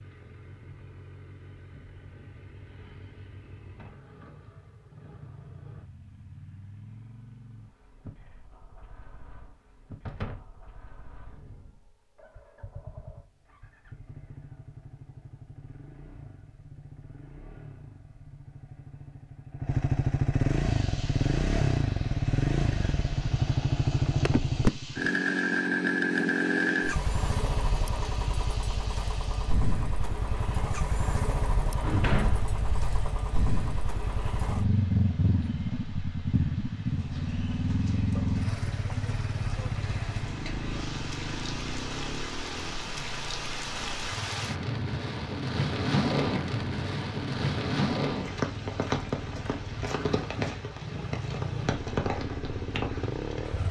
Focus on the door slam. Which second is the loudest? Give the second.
32 s.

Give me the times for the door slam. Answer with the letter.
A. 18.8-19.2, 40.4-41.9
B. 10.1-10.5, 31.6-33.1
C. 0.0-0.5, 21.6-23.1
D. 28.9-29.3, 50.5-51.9
B.